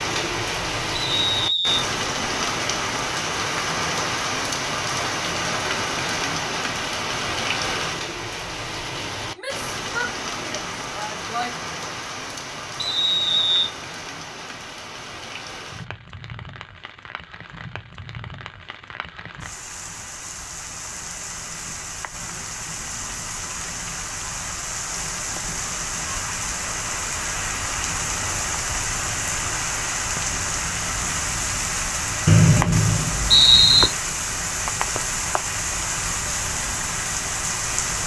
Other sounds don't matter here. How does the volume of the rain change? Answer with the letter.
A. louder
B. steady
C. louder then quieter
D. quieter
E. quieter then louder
E.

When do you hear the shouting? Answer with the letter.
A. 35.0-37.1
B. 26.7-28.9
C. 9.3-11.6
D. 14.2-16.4
C.